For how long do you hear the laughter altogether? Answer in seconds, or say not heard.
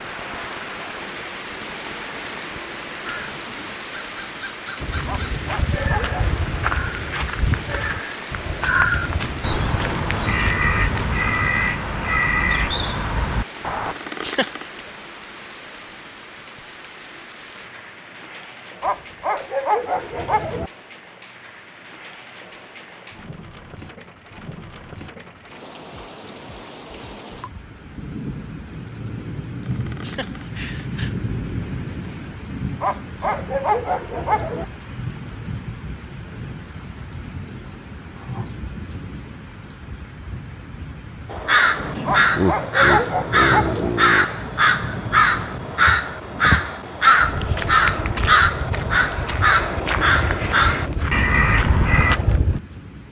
4 s.